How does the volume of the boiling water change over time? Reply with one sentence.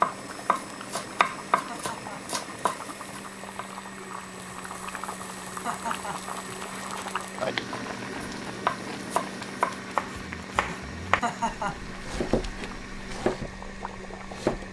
The volume of the boiling water goes up, then down.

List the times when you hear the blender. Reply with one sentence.
You can hear the blender from 0.0 to 14.6 s.